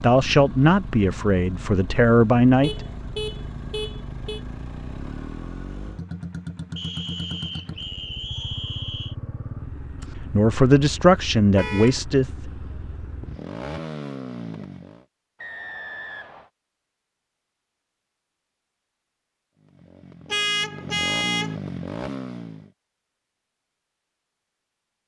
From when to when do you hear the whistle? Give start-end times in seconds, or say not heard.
6.8-9.2, 15.4-16.5.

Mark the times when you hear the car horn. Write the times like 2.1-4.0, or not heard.
2.6-4.4, 11.6-12.0, 20.2-21.6.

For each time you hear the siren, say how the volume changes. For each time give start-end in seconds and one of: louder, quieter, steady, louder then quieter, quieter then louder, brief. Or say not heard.
not heard.